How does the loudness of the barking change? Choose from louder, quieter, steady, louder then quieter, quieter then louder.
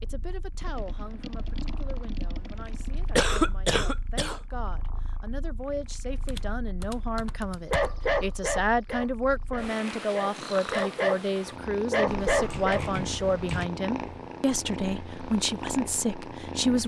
quieter then louder.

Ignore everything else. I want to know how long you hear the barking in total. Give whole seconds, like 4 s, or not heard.
5 s.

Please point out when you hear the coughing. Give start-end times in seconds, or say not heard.
3.1-4.4.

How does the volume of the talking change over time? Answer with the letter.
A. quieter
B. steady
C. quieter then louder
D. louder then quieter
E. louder
E.